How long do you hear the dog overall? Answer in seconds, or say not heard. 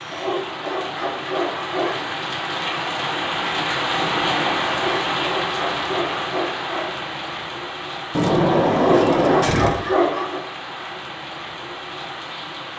6 s.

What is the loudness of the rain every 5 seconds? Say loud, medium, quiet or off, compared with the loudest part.
loud, loud, medium.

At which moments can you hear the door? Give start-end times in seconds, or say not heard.
4.0-4.7, 8.1-9.8.